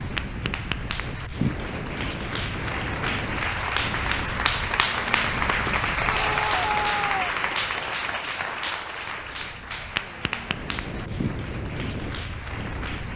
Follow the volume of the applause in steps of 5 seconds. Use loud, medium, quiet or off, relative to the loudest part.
loud, loud, medium.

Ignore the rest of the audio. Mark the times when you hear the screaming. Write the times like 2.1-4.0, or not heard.
6.0-7.3.